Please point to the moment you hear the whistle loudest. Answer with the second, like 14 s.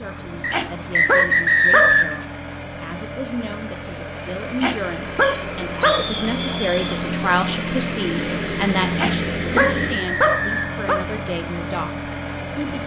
2 s.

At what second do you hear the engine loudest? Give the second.
9 s.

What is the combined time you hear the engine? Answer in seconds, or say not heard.
13 s.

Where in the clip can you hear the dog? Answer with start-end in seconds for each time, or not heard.
0.3-2.0, 4.5-6.1, 8.8-11.1.